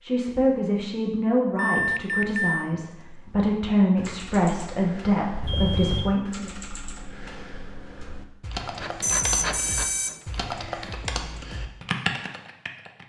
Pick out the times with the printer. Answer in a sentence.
You can hear the printer from 8.6 to 10.6 s.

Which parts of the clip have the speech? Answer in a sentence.
You can hear the speech from 0.0 to 6.5 s.